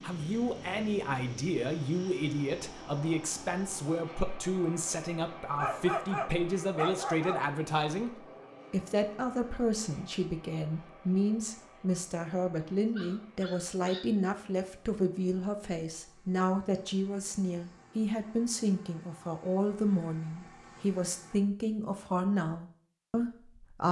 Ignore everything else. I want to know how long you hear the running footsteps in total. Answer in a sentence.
You can't hear the running footsteps here.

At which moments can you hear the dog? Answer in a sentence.
You can hear the dog from 5.5 to 7.5 s and from 12.6 to 14.1 s.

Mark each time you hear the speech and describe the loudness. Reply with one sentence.
You can hear the speech from 0.0 to 23.8 s, at a steady volume.